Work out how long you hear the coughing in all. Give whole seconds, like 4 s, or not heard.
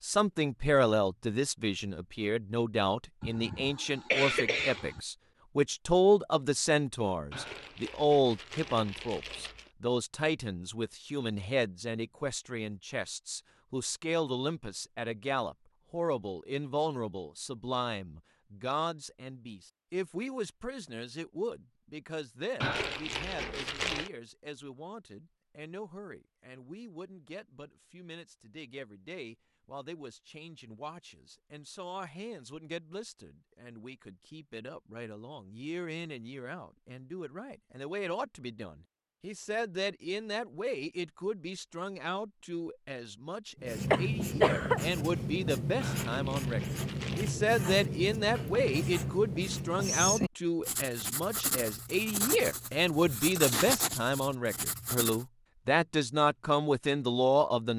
3 s.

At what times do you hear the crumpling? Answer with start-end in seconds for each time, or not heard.
7.3-9.7, 22.6-24.1, 45.8-47.4.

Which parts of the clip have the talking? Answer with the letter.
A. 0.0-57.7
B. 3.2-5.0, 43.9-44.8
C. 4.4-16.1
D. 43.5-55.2
A.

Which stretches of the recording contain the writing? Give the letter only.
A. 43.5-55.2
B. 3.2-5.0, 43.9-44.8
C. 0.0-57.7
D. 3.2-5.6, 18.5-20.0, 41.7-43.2
A.